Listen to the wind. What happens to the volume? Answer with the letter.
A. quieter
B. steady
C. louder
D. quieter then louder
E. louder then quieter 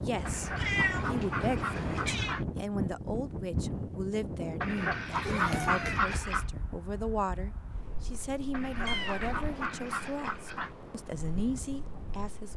A.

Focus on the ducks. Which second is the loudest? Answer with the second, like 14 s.
6 s.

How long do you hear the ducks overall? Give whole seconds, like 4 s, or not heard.
6 s.